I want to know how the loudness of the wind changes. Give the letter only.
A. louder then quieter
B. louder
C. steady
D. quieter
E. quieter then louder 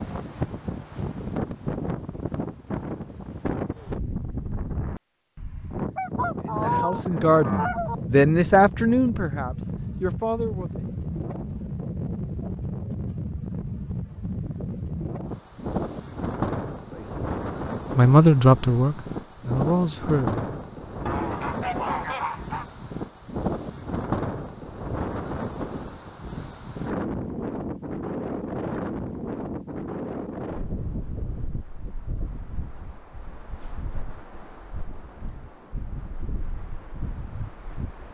D.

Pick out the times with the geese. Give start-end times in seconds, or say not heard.
6.0-8.0, 21.1-22.6.